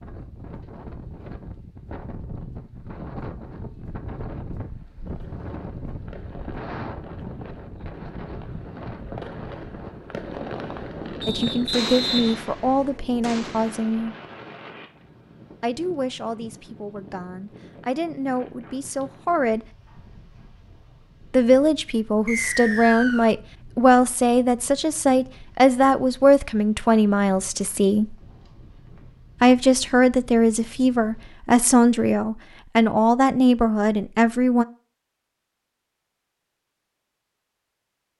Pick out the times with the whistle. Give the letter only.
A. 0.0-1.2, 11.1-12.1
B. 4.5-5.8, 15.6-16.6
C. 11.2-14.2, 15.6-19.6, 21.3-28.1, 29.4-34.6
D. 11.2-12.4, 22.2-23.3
D.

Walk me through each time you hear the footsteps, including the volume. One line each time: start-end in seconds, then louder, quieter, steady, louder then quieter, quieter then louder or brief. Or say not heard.
not heard.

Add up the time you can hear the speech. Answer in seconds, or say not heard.
19 s.